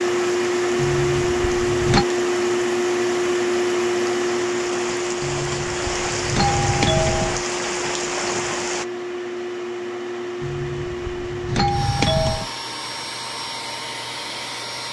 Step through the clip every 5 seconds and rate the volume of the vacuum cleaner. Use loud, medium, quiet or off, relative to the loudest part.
loud, medium, medium.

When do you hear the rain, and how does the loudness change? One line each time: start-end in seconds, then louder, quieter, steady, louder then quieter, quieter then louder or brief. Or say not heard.
0.0-8.8 louder.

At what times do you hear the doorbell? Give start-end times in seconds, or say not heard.
0.8-2.0, 5.2-7.5, 10.4-12.5.